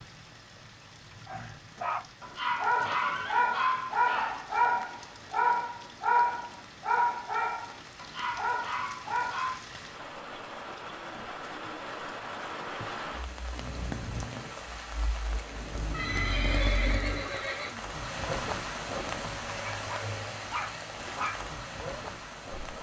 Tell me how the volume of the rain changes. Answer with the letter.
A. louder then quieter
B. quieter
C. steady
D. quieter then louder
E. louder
E.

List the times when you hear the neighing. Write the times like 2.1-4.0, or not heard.
2.8-3.5, 15.9-17.8.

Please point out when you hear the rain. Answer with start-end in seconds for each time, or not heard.
0.0-22.7.